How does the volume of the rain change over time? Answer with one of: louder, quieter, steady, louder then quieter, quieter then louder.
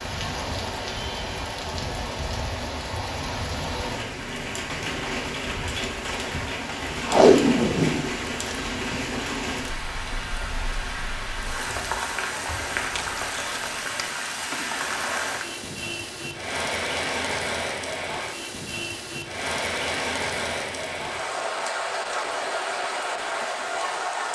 steady.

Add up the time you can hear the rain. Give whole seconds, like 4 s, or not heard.
24 s.